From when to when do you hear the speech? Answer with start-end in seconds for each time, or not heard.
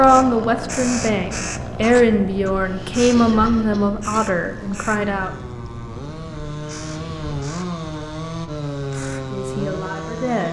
0.0-5.3, 9.3-10.4.